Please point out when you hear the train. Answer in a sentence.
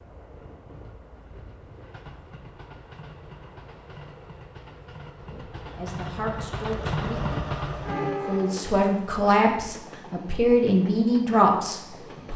You can hear the train from 0.0 to 12.3 s.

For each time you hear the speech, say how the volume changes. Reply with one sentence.
You can hear the speech from 5.3 to 12.3 s, getting louder.